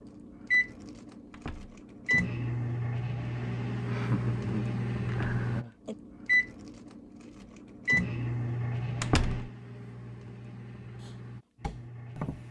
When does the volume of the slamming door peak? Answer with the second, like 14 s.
9 s.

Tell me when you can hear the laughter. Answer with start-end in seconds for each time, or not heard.
3.9-5.7.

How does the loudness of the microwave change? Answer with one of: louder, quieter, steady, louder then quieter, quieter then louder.
quieter.